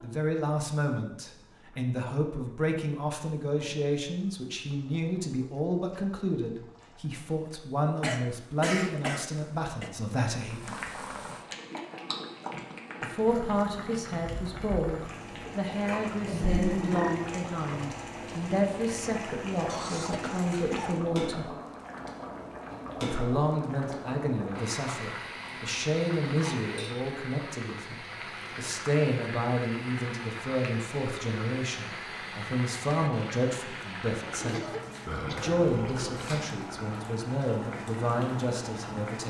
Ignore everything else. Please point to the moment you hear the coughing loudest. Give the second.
9 s.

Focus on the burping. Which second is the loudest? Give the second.
17 s.